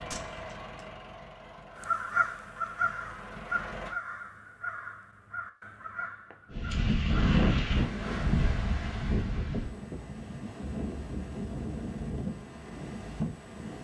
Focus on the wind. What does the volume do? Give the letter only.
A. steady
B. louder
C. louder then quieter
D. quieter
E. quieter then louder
D.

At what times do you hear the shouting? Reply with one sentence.
The shouting can't be heard in this clip.